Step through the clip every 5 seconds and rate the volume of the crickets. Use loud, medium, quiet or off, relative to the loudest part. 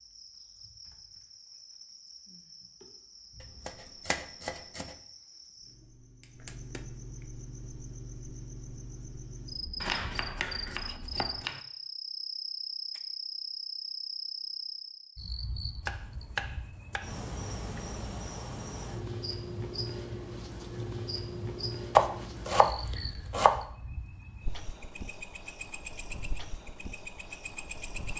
quiet, medium, loud, loud, loud, loud.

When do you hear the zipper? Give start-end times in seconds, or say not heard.
not heard.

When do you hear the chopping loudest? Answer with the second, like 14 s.
22 s.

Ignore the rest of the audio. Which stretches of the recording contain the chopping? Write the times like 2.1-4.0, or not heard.
3.4-5.0, 9.8-11.6, 15.8-17.1, 21.9-23.6.